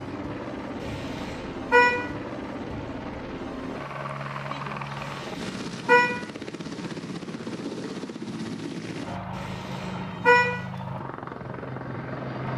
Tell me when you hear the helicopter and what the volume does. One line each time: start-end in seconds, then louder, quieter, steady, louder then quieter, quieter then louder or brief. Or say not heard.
0.0-12.5 steady.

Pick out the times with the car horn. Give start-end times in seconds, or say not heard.
0.8-2.0, 5.0-6.2, 9.3-10.6.